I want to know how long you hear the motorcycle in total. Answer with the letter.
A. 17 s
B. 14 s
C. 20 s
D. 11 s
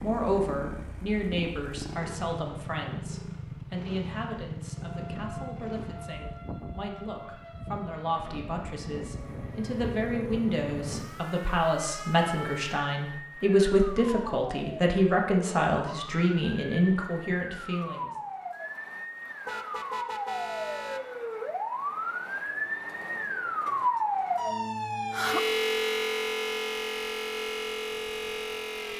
D.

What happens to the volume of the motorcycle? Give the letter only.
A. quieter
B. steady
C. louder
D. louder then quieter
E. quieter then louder
E.